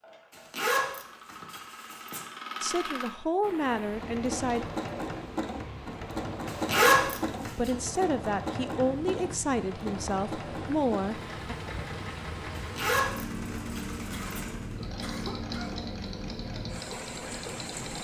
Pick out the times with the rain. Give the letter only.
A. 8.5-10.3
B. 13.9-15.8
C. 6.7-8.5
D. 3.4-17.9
D.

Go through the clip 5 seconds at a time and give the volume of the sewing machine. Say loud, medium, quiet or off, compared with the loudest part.
loud, loud, medium, medium.